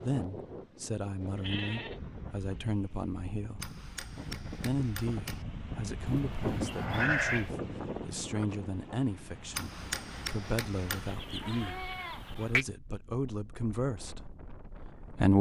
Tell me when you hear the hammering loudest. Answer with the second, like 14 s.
10 s.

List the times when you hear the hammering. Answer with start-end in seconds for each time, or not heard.
3.5-5.5, 9.5-11.2.